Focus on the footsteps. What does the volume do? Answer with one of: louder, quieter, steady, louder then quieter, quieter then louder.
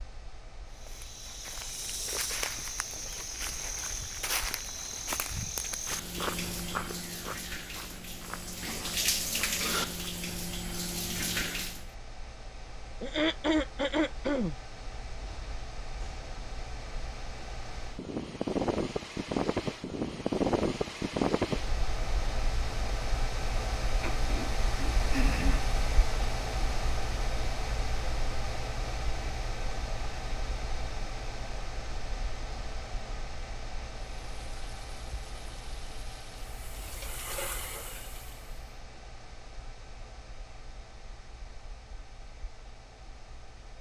quieter.